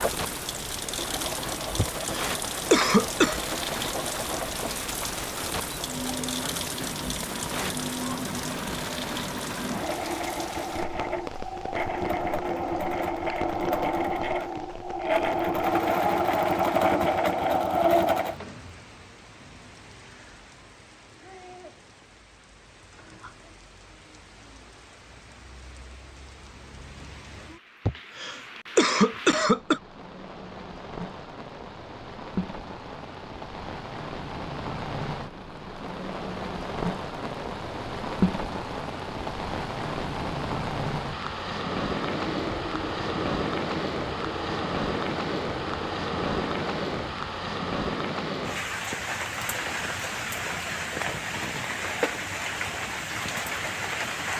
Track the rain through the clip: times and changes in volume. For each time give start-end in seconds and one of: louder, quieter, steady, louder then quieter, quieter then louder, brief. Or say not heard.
0.0-54.3 quieter then louder.